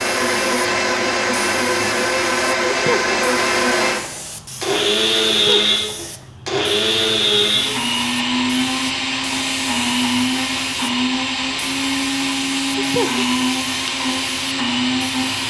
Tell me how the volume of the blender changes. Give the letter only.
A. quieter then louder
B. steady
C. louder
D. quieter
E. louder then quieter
B.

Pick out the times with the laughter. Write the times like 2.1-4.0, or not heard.
2.7-3.1, 5.3-6.1, 12.7-13.2.